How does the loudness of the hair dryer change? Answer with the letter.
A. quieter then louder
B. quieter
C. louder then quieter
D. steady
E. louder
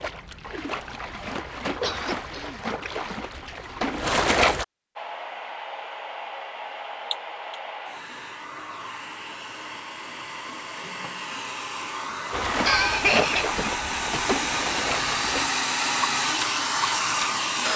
E.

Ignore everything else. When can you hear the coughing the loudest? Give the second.
13 s.